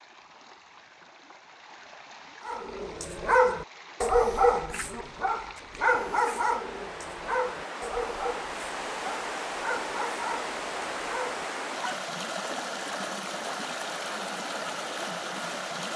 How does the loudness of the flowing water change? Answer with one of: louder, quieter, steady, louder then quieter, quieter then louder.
louder.